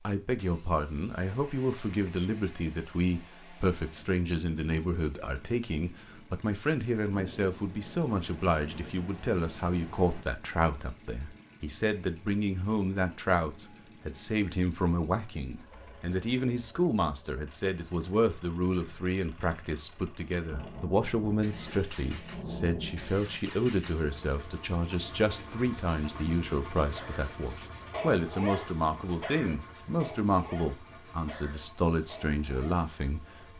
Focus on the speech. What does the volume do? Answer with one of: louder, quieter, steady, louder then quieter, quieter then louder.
steady.